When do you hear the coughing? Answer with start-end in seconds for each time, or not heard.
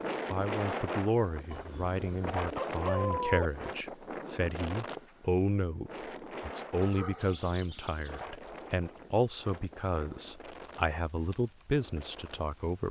not heard.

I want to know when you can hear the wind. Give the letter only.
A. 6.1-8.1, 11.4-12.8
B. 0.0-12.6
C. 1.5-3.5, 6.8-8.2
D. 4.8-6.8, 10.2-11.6
B.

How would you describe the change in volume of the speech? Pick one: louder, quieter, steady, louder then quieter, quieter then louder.
steady.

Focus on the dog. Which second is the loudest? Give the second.
3 s.